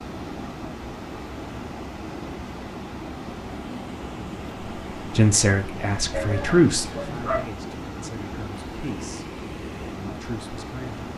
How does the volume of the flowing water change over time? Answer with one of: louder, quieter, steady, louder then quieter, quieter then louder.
steady.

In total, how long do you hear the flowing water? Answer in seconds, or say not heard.
11 s.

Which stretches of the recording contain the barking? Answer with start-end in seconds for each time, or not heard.
6.1-7.5.